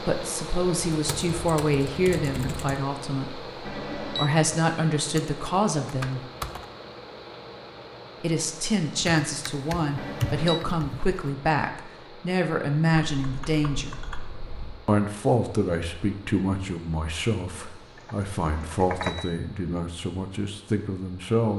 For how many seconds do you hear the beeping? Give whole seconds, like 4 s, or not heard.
2 s.